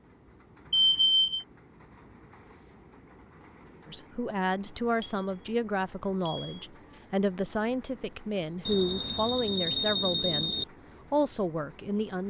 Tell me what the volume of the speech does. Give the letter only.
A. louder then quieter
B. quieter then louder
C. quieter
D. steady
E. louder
D.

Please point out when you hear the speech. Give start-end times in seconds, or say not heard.
3.9-12.2.